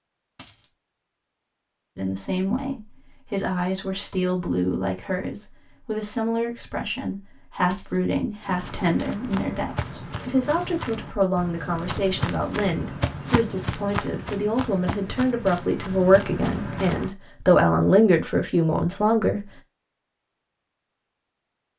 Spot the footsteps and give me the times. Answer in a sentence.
The footsteps can be heard from 8.4 to 17.1 s.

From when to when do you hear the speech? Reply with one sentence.
You can hear the speech from 1.9 to 19.4 s.